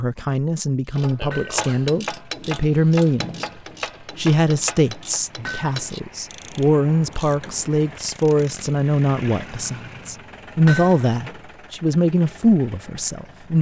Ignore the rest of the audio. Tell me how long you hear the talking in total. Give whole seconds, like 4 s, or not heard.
13 s.